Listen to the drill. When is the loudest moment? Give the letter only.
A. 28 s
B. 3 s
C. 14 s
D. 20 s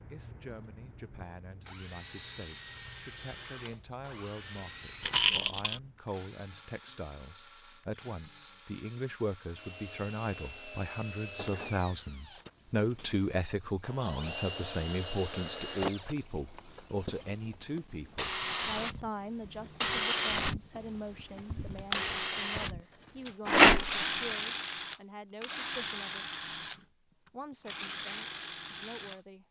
D.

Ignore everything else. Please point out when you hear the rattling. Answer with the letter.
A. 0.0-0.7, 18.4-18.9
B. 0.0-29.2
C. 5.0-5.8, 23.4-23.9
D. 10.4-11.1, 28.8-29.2
C.